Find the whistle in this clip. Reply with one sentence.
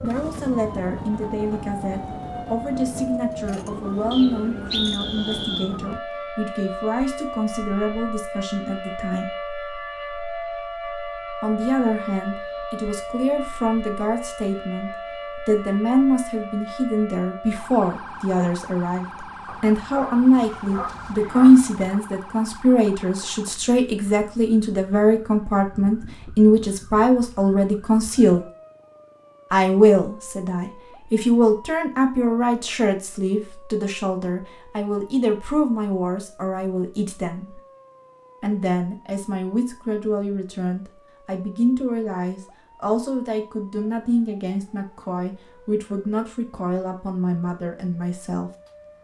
You can hear the whistle from 4.1 to 5.7 s.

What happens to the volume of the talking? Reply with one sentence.
The volume of the talking goes up, then down.